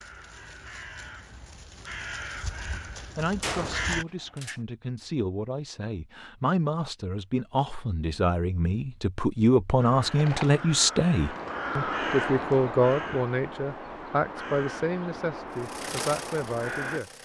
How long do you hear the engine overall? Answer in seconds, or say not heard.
2 s.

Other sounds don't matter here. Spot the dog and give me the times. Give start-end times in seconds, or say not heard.
not heard.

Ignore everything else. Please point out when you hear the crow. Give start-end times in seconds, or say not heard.
0.0-4.0, 9.8-17.0.